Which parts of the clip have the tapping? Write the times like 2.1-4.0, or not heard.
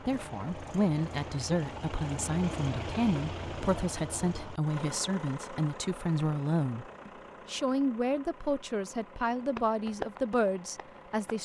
9.2-11.4.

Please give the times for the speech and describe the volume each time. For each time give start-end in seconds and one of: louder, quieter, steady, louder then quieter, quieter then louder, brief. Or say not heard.
0.1-11.4 steady.